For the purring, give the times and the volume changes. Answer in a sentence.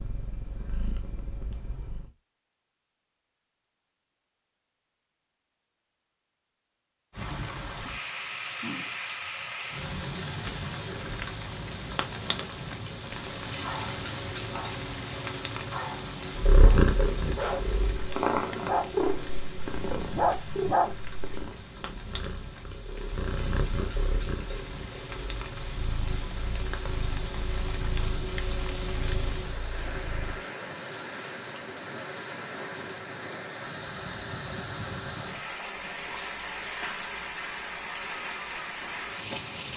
The purring can be heard briefly from 0.0 to 2.1 s; and from 16.4 to 30.4 s, getting quieter.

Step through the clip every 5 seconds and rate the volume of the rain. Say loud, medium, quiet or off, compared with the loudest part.
off, loud, loud, loud, medium, loud, loud, loud.